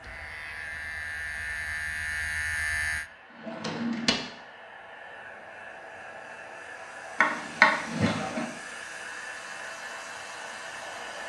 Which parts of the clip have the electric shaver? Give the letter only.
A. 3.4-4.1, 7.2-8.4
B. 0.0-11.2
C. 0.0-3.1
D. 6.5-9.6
C.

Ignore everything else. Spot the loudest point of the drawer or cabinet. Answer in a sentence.
The volume of the drawer or cabinet peaks at 8 seconds.